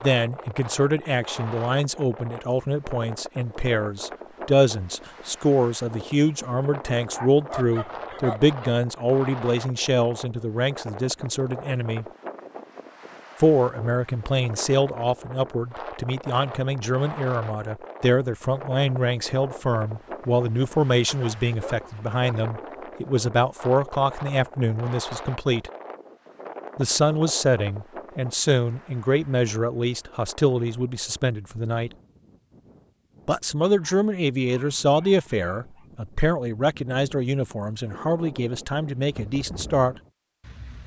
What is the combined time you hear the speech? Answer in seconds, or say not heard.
36 s.